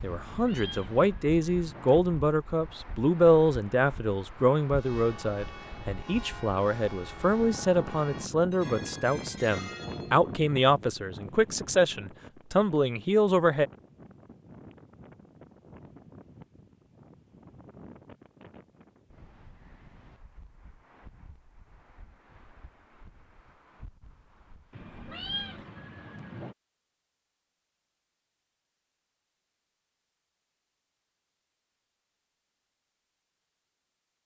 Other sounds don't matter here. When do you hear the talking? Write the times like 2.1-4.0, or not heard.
0.0-13.7.